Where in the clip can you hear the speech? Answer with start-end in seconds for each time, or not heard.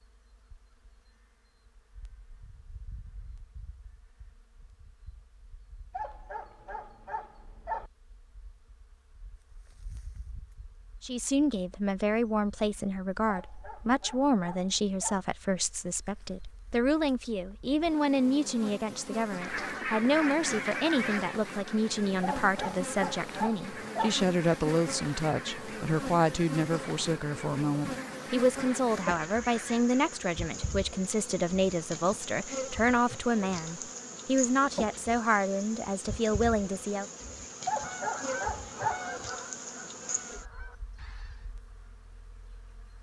11.0-37.0.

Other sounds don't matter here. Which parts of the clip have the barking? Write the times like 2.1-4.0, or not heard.
5.9-7.9, 13.2-15.2, 22.2-24.1, 37.6-39.1.